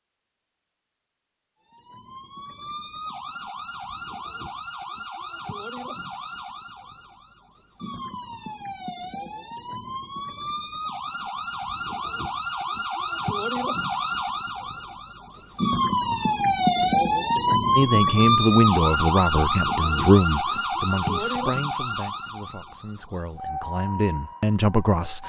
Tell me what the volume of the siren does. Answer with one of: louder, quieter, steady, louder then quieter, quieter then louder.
louder then quieter.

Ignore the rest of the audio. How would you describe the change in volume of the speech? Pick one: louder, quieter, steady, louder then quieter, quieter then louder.
quieter then louder.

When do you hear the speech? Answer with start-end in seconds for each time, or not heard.
17.8-25.2.